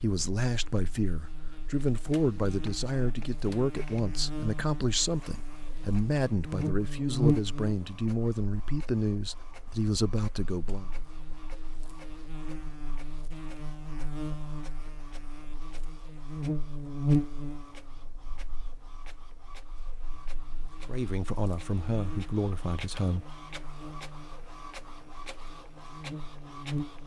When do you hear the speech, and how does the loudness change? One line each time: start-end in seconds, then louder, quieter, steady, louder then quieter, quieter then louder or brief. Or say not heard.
0.0-10.9 steady
20.9-23.2 brief.